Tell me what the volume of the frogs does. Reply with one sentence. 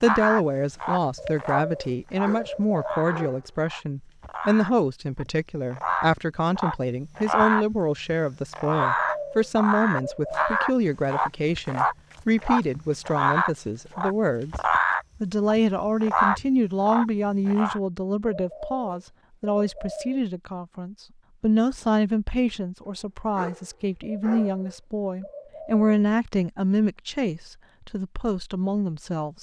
The loudness of the frogs goes up.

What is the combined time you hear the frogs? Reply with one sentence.
The frogs can be heard for 18 seconds in total.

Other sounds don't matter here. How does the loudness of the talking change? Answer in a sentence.
The volume of the talking stays about the same.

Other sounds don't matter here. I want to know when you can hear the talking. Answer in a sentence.
The talking can be heard from 0.0 to 14.6 s and from 15.2 to 29.3 s.